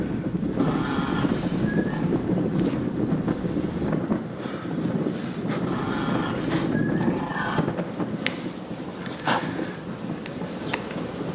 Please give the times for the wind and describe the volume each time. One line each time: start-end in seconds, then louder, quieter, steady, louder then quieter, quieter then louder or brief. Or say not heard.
0.0-11.2 quieter.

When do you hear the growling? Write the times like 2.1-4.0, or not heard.
0.6-2.1, 5.7-7.6.